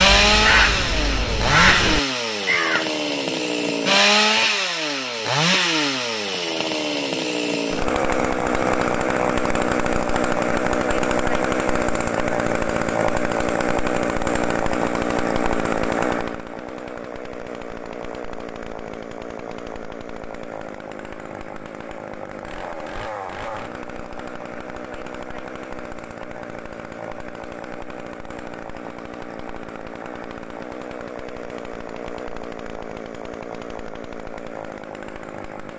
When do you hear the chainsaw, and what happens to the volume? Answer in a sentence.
The chainsaw can be heard from 0.0 to 35.7 s, getting quieter.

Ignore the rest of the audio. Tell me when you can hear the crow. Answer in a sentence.
You can hear the crow from 0.0 to 2.9 s.